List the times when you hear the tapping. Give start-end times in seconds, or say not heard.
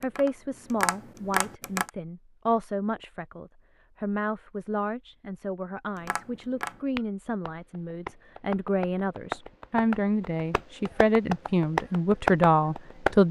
0.0-1.9, 6.0-13.2.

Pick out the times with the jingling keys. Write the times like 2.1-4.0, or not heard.
not heard.